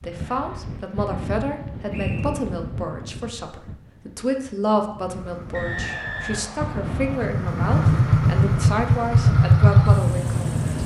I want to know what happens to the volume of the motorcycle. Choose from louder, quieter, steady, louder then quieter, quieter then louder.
louder.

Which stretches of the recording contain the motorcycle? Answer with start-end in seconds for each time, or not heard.
5.0-10.8.